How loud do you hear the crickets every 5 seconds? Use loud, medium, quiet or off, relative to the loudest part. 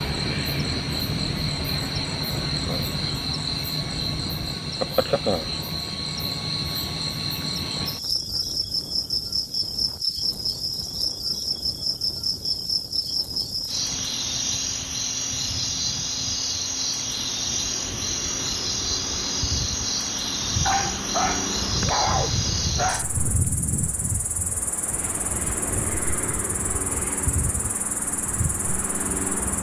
loud, loud, loud, loud, loud, medium.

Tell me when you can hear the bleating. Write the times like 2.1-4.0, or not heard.
not heard.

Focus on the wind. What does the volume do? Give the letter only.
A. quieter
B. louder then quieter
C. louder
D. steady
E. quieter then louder
E.